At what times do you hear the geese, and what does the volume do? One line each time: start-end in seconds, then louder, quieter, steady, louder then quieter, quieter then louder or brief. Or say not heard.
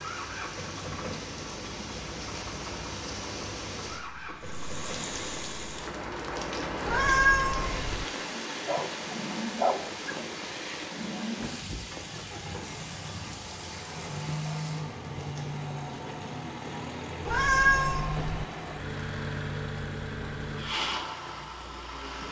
not heard.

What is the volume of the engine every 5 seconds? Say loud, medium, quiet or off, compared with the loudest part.
medium, medium, loud, loud, loud.